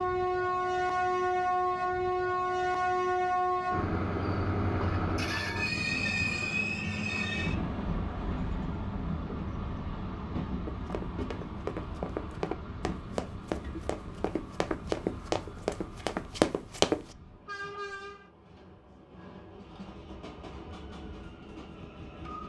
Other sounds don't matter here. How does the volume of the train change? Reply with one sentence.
The loudness of the train goes down.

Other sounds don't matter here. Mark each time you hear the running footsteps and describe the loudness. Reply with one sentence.
You can hear the running footsteps from 10.7 to 17.1 s, getting louder.